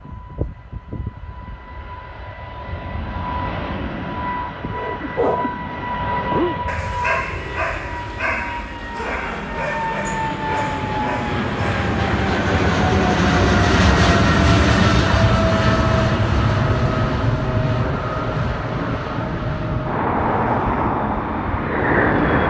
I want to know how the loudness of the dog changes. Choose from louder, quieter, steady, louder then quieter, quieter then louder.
quieter.